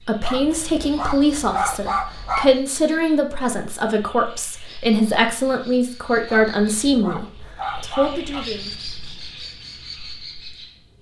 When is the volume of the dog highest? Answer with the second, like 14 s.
2 s.